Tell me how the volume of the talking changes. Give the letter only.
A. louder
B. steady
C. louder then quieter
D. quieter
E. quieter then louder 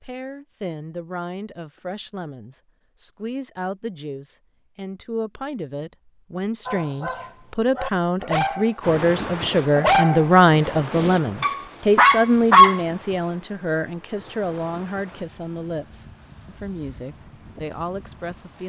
C.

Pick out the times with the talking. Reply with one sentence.
You can hear the talking from 0.0 to 18.6 s.